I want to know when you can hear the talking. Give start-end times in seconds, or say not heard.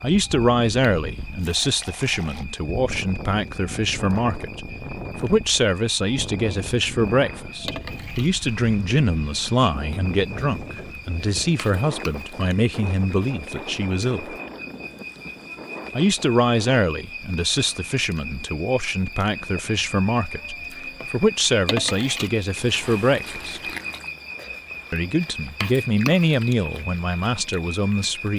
0.0-14.3, 15.9-23.7, 24.9-28.3.